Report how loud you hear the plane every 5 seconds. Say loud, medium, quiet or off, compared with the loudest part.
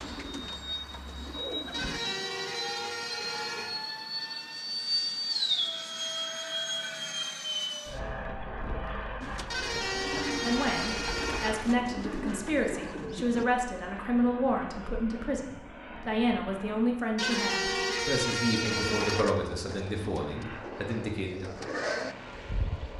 loud, loud, medium, quiet, medium.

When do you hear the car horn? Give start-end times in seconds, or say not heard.
1.7-3.8, 9.5-11.5, 17.1-19.2.